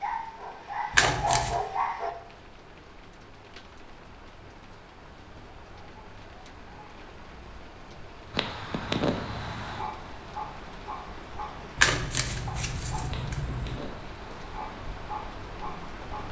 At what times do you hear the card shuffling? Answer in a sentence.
The card shuffling can be heard from 0.9 to 1.6 s and from 11.8 to 13.8 s.